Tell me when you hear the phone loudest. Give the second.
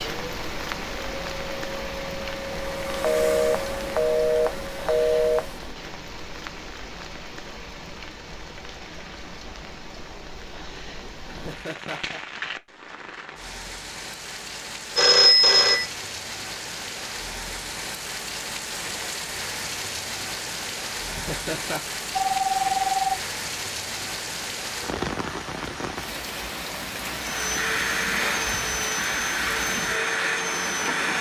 15 s.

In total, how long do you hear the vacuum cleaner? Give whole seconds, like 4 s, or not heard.
9 s.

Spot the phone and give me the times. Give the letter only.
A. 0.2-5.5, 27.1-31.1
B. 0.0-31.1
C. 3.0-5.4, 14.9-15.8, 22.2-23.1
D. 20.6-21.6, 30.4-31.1
C.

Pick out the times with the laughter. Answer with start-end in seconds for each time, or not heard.
11.2-12.2, 21.1-21.8.